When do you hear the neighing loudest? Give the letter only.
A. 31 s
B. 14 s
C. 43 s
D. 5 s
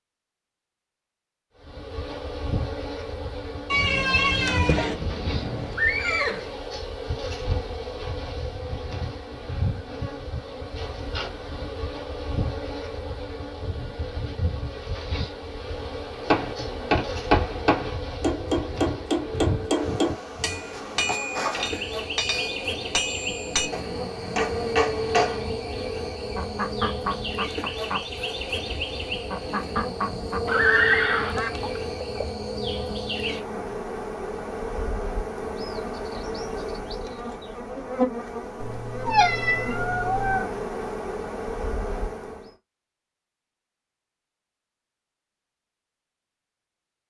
A.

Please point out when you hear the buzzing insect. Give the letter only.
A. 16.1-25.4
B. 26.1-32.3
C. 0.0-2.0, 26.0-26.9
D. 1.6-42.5
D.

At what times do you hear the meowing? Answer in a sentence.
You can hear the meowing from 3.7 to 5.0 s and from 38.6 to 40.5 s.